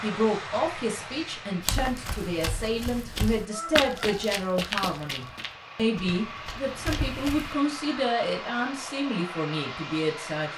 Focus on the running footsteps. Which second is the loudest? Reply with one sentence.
The loudest moment of the running footsteps is at 4 seconds.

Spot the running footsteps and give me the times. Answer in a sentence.
The running footsteps can be heard from 1.6 to 7.5 s.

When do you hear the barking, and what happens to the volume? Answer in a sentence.
The barking can't be heard in this clip.